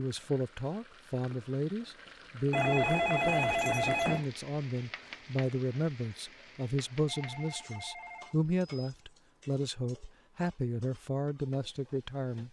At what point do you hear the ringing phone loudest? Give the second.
3 s.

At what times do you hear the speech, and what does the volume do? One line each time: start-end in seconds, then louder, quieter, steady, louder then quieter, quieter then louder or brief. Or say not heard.
0.0-12.4 steady.